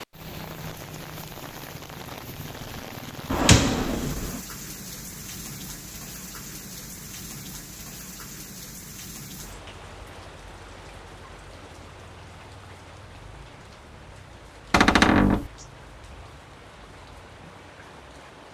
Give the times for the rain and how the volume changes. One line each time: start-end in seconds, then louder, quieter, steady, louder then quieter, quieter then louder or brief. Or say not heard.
0.0-18.5 quieter.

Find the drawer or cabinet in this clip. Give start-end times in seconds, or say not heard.
3.3-4.4, 14.7-15.5.